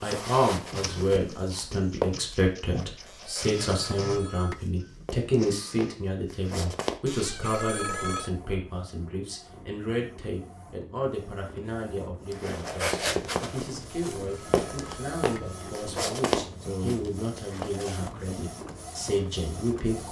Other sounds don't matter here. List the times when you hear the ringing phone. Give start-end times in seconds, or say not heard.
3.0-4.6, 7.0-8.3, 14.2-15.9.